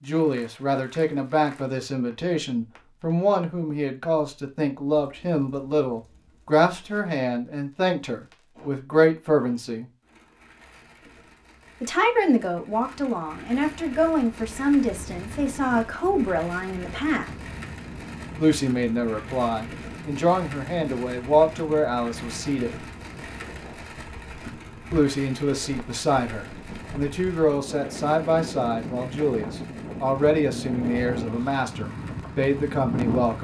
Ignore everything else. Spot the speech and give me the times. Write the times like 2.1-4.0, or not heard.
0.0-9.8, 11.8-17.3, 18.4-22.9, 24.9-33.3.